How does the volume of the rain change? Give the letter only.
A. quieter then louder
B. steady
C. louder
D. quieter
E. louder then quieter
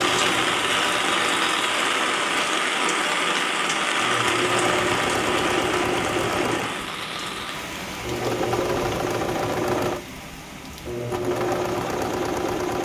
D.